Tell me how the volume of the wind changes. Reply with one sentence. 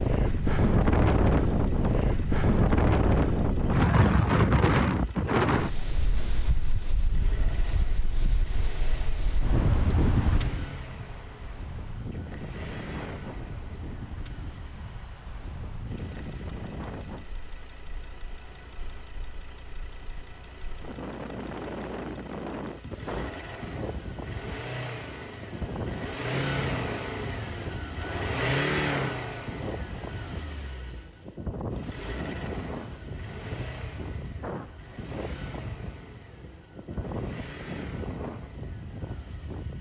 The loudness of the wind goes down.